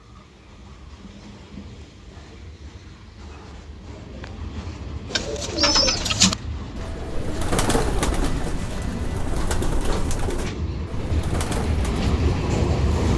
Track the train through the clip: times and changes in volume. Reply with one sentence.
You can hear the train from 0.0 to 13.1 s, getting louder.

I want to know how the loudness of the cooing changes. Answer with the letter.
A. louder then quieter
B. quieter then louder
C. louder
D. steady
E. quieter
E.